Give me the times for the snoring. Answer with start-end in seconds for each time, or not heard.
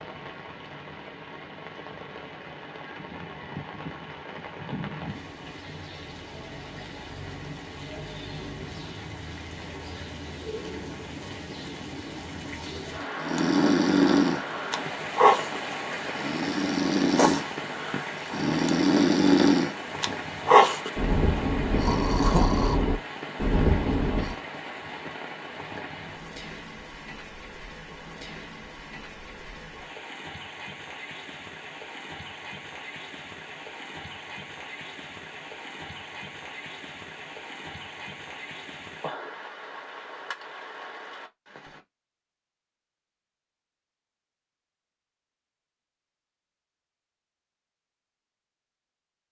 13.2-24.4.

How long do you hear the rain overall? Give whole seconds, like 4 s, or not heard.
42 s.